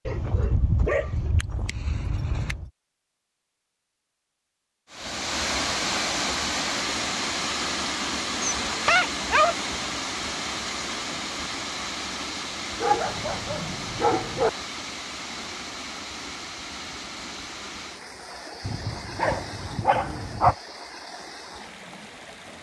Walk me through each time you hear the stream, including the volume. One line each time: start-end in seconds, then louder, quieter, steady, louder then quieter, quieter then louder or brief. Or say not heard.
4.9-22.5 quieter.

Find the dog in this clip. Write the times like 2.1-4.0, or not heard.
0.1-2.7, 8.7-9.6, 12.8-14.5, 18.6-20.6.